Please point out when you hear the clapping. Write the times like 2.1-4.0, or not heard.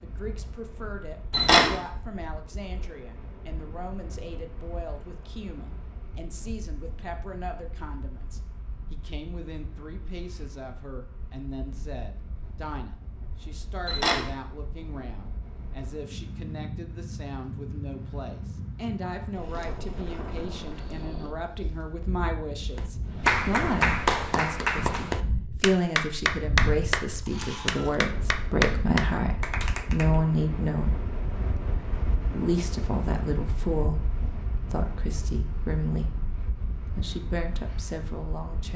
22.8-30.1.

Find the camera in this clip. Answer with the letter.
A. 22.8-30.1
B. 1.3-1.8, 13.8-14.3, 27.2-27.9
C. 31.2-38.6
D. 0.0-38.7
B.